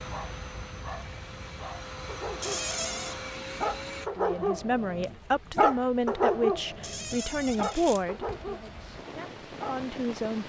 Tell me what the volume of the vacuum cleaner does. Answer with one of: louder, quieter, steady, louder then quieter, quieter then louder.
louder.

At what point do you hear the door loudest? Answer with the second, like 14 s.
3 s.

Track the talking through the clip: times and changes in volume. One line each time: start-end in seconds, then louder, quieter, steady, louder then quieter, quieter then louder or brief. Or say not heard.
4.2-10.4 quieter.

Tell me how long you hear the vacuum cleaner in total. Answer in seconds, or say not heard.
4 s.